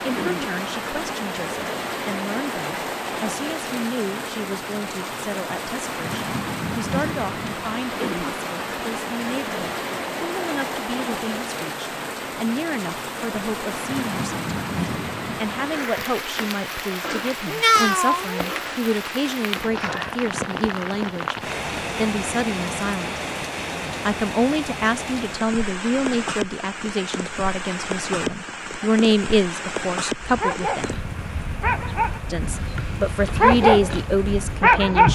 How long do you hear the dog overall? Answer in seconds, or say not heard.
5 s.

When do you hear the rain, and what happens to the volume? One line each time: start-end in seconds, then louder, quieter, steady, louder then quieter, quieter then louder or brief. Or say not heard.
0.0-35.0 steady.